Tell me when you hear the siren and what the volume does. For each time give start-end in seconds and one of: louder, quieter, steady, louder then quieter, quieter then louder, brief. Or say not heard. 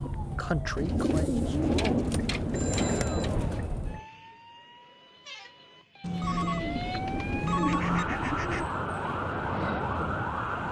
0.0-10.6 quieter then louder.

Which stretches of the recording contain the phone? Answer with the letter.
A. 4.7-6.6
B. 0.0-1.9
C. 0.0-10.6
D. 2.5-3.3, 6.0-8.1
D.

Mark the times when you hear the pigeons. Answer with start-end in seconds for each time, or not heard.
0.8-3.7, 6.2-8.7.